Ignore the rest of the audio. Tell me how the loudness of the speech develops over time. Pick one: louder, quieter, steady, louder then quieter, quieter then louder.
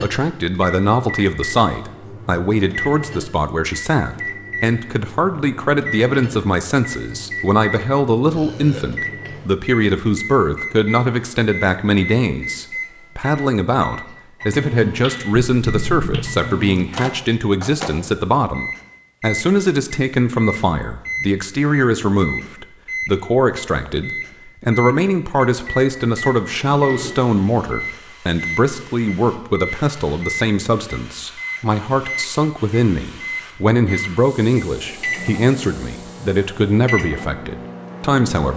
steady.